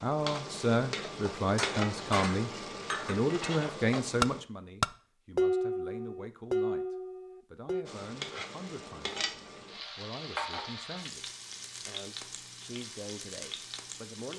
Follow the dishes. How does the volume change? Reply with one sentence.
The volume of the dishes goes up, then down.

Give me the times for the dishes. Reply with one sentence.
The dishes can be heard from 1.4 to 7.8 s.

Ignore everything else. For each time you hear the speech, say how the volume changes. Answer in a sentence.
You can hear the speech from 0.0 to 14.3 s, getting quieter.